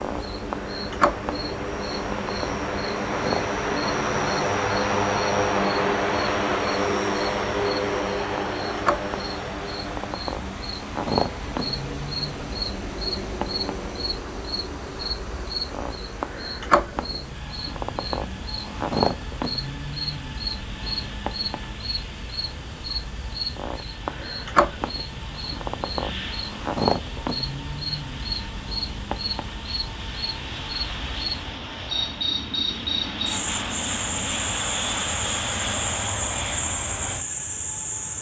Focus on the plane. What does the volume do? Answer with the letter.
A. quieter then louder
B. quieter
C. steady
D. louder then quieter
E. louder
A.